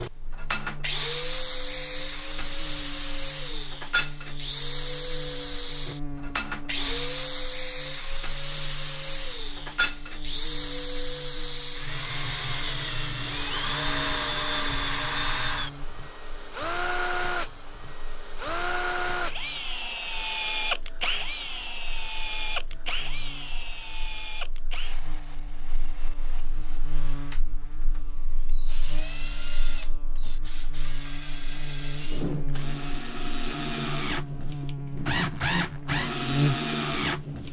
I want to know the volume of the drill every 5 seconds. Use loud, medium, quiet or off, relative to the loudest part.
loud, loud, loud, loud, loud, quiet, medium, loud.